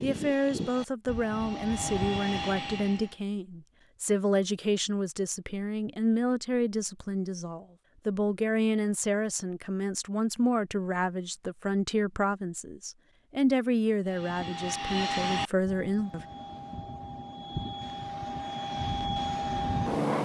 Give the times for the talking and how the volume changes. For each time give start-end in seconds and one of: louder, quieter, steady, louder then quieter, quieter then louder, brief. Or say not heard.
0.0-16.2 steady.